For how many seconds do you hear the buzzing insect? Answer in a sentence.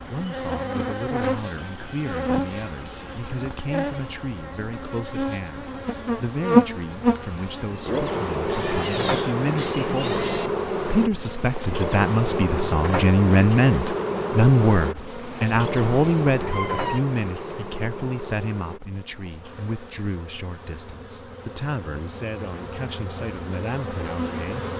You can hear the buzzing insect for 25 seconds altogether.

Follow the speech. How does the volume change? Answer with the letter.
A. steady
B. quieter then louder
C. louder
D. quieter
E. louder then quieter
E.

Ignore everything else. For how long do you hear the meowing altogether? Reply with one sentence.
The meowing can be heard for 3 seconds in total.